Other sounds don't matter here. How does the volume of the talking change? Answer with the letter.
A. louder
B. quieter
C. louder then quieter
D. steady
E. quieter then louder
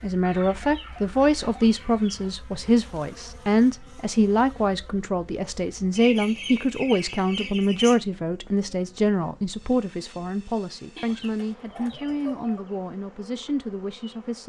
B.